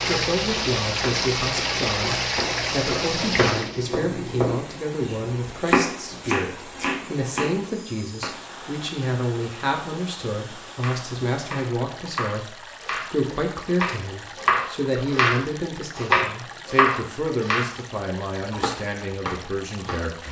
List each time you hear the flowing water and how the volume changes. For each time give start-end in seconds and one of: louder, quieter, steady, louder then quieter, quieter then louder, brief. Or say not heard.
0.0-20.2 quieter.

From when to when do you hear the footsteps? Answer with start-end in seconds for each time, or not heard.
not heard.